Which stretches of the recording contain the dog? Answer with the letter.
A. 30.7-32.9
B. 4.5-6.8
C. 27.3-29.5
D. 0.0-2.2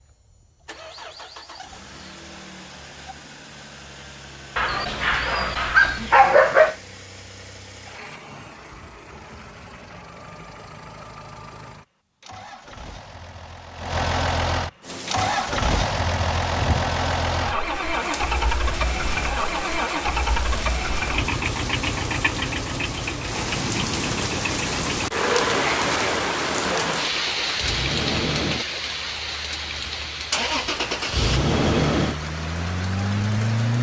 B.